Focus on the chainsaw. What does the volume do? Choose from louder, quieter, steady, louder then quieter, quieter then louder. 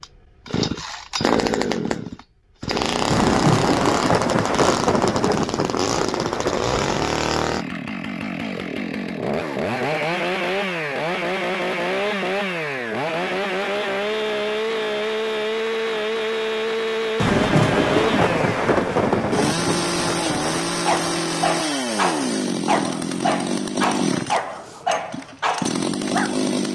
steady.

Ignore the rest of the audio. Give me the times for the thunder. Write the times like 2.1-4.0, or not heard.
3.1-7.0, 17.1-20.6.